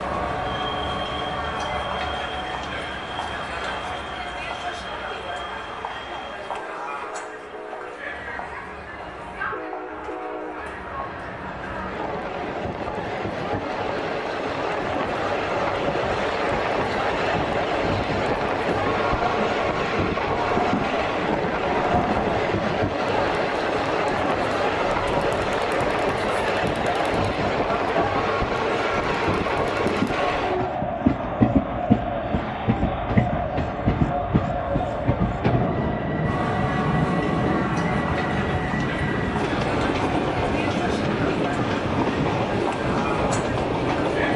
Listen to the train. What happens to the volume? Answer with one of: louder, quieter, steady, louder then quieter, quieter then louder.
louder.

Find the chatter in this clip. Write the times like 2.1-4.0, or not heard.
0.0-44.3.